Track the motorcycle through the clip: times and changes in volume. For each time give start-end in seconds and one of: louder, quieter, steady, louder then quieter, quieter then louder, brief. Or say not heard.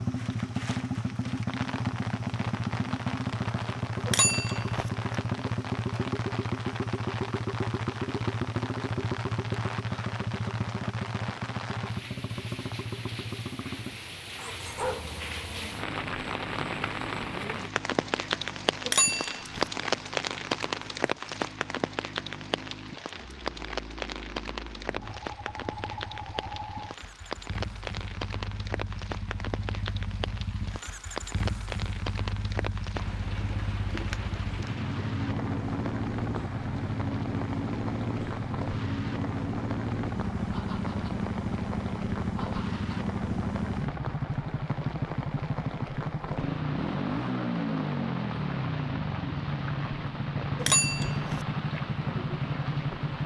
0.0-53.2 quieter then louder.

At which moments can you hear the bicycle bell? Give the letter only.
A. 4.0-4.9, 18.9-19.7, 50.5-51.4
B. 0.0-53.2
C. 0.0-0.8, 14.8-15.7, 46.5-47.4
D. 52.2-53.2
A.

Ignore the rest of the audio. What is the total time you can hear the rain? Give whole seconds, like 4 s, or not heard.
53 s.